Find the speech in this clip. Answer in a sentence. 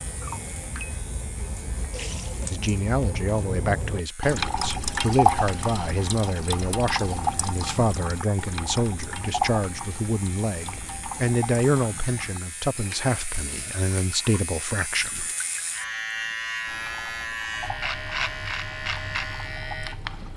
The speech can be heard from 2.5 to 15.3 s.